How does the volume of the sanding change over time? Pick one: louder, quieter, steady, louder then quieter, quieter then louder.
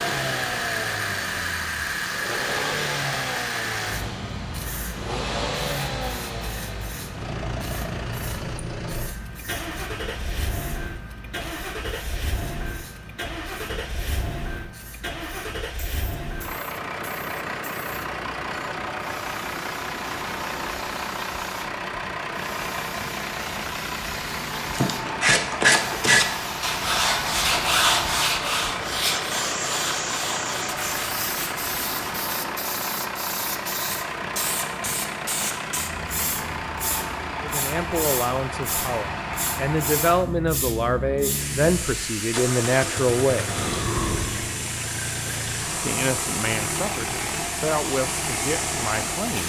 quieter.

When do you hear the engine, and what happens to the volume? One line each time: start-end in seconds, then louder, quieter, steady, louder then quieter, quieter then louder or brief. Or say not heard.
0.0-49.4 steady.